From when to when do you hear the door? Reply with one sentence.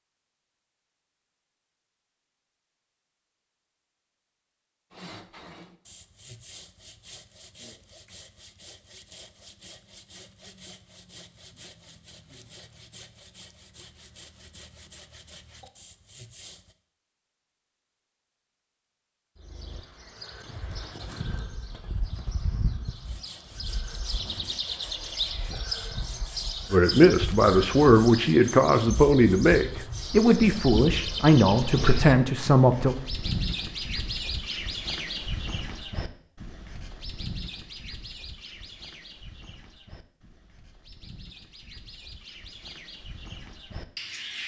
The door can't be heard in this clip.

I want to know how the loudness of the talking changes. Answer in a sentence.
The loudness of the talking stays about the same.